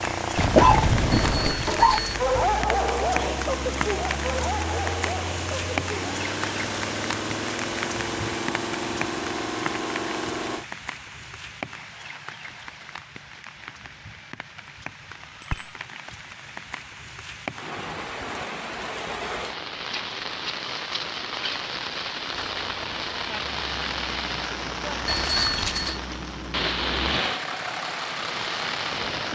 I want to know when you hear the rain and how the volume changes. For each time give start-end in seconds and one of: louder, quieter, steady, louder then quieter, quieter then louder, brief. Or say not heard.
0.0-29.3 quieter then louder.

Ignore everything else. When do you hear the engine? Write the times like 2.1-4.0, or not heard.
0.0-10.7, 22.2-29.3.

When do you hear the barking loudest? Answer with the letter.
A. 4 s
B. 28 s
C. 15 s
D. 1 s
D.